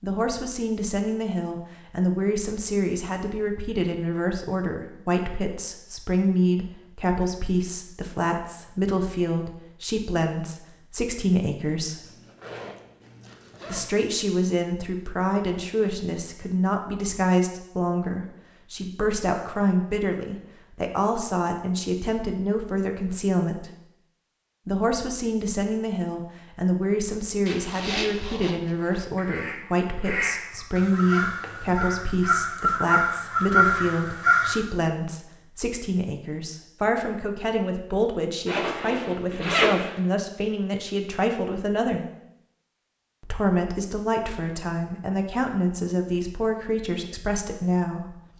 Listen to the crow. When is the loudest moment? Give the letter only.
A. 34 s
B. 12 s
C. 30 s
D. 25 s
A.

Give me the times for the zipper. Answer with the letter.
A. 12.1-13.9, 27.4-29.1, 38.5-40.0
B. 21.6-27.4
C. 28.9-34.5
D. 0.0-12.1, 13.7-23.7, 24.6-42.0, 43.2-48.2
A.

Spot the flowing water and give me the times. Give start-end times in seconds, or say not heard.
not heard.